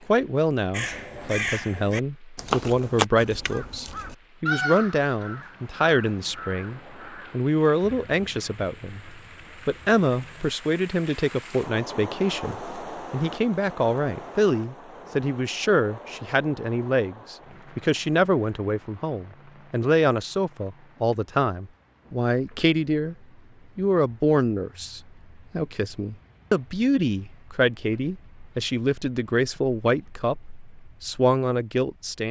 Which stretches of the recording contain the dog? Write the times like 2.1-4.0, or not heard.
not heard.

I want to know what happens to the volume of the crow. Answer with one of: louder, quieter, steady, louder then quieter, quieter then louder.
quieter.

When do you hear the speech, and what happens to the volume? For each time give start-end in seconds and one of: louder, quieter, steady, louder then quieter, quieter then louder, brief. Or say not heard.
0.1-23.1 steady
23.8-32.2 steady.